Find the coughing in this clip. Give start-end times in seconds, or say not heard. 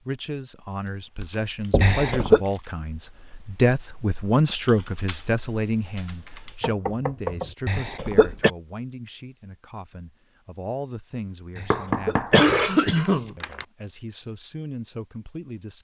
1.8-2.4, 7.7-8.5, 11.6-13.3.